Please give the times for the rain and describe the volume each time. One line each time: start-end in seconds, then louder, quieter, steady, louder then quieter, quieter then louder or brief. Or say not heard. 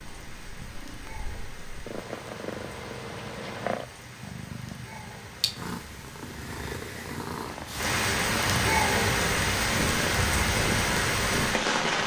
0.0-12.0 louder.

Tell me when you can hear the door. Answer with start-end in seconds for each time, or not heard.
not heard.